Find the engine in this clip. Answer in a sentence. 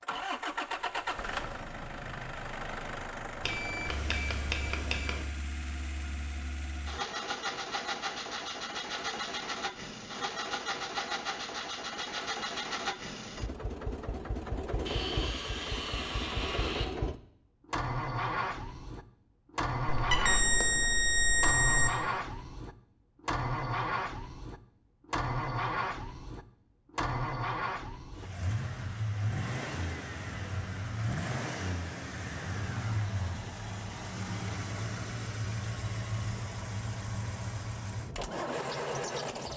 You can hear the engine from 0.0 to 39.5 s.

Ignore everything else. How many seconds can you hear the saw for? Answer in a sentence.
You can hear the saw for 2 seconds altogether.